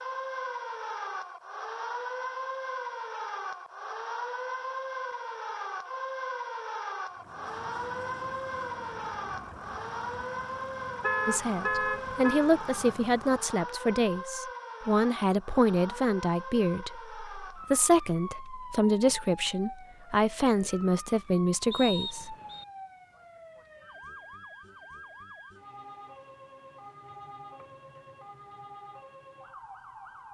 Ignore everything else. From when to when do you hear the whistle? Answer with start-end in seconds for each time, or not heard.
21.7-22.6.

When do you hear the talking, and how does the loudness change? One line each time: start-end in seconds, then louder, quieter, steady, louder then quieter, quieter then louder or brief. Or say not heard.
11.2-22.4 steady.